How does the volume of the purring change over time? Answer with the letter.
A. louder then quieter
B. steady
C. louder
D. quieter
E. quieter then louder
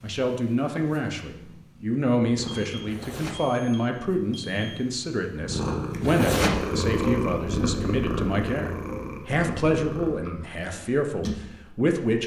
A.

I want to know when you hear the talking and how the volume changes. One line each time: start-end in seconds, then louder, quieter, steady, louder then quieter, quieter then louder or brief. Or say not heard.
0.0-12.2 steady.